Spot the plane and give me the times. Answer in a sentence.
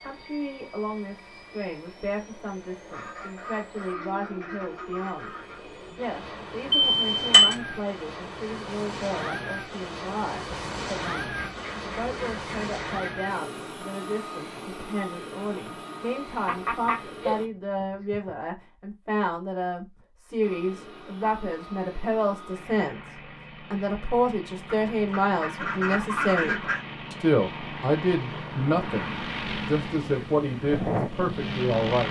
The plane can be heard from 0.0 to 17.5 s and from 20.4 to 32.0 s.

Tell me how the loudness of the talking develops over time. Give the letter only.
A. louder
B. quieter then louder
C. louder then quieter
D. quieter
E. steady
A.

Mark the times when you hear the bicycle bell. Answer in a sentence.
You can hear the bicycle bell from 6.7 to 7.5 s.